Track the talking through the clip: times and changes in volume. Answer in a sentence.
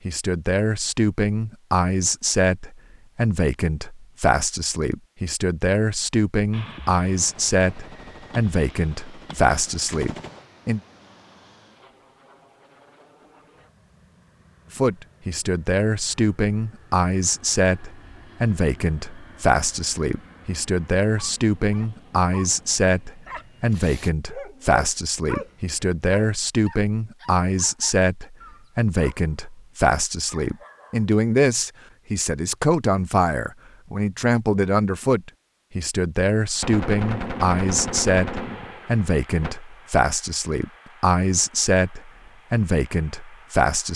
The talking can be heard from 0.1 to 10.8 s, at a steady volume; and from 14.7 to 43.9 s, at a steady volume.